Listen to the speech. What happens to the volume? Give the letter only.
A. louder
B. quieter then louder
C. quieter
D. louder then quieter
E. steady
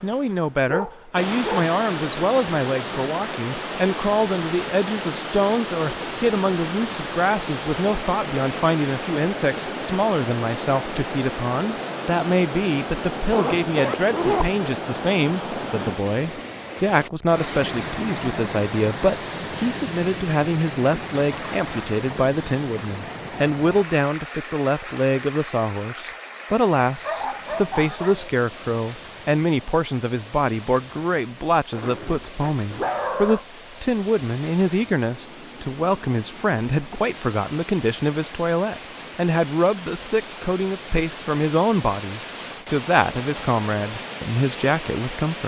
E.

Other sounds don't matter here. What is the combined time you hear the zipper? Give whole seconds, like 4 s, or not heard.
3 s.